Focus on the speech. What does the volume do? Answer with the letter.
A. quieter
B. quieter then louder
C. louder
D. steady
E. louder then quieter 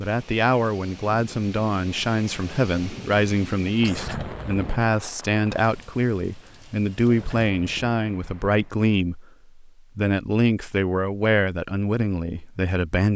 D.